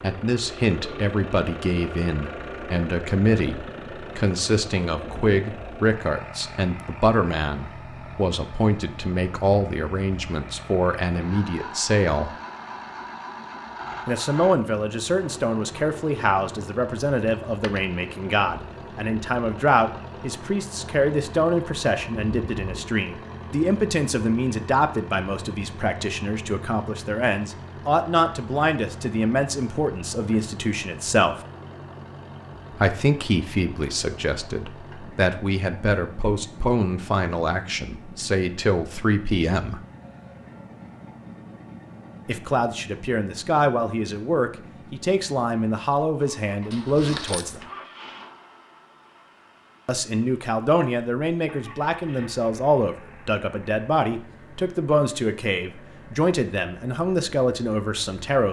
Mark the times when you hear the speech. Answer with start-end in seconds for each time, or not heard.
0.0-12.3, 14.1-31.4, 32.8-39.8, 42.2-47.6, 49.9-58.4.